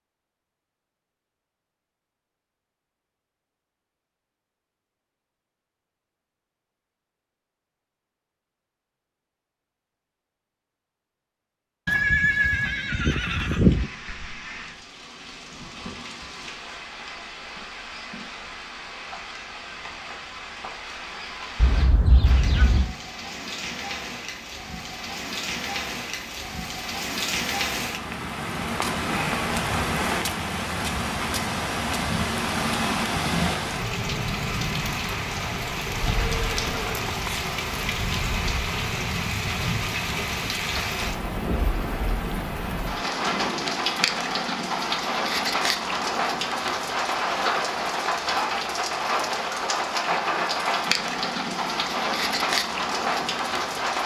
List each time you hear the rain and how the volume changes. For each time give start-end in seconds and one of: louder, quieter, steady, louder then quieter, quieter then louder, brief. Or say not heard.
13.6-54.0 louder.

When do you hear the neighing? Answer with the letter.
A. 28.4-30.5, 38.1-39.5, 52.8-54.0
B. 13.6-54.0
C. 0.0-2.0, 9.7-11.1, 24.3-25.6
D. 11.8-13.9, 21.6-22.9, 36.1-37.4
D.